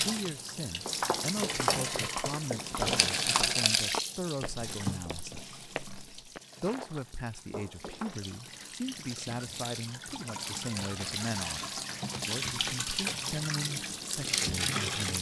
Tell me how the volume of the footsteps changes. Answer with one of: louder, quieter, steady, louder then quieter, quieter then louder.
quieter.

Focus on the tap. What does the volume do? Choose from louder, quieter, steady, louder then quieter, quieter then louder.
quieter then louder.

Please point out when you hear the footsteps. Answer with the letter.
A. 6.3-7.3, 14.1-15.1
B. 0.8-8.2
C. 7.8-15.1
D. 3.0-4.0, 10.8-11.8
B.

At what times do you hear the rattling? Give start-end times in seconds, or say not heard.
3.0-4.0, 10.8-11.8.